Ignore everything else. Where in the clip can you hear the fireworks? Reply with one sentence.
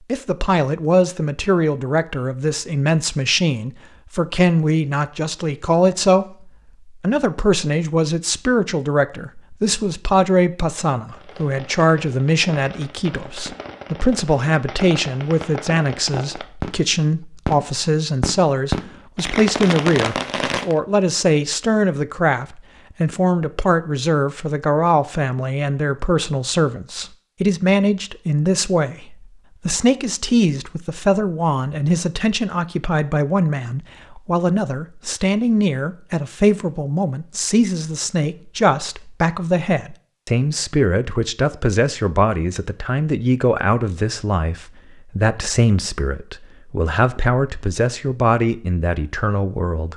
You can hear the fireworks from 11.1 to 20.8 s.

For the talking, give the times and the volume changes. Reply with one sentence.
You can hear the talking from 0.1 to 49.9 s, at a steady volume.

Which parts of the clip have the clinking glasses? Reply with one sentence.
You can't hear the clinking glasses here.